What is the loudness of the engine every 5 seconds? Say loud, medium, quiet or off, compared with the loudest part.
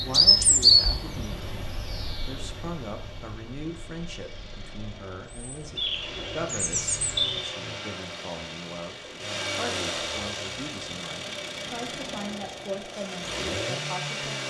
quiet, loud, loud.